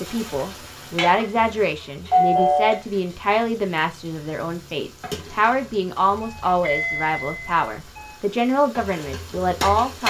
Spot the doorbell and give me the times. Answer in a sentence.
You can hear the doorbell from 2.1 to 2.8 s and from 6.2 to 8.2 s.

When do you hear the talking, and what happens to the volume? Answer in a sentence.
The talking can be heard from 0.0 to 10.0 s, at a steady volume.